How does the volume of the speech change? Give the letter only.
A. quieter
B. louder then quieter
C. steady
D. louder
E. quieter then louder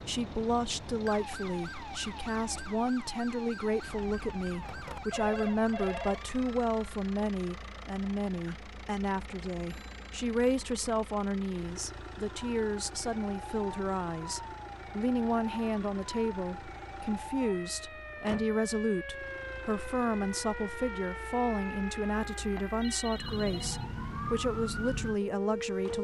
C.